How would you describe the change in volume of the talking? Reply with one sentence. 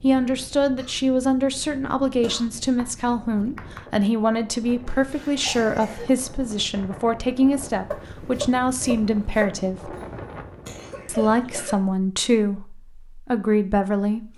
The volume of the talking stays about the same.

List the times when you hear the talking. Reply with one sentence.
The talking can be heard from 0.0 to 9.9 s and from 11.1 to 14.3 s.